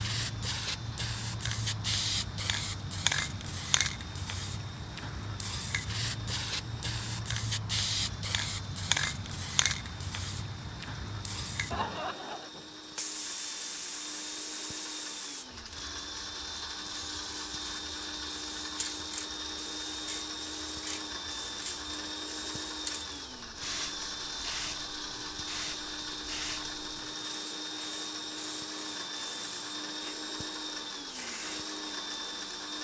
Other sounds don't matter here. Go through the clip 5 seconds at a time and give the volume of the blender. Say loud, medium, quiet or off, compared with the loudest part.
medium, medium, medium, loud, loud, loud, loud.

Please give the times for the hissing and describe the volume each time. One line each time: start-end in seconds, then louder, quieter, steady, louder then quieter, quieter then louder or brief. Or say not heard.
0.0-32.7 quieter.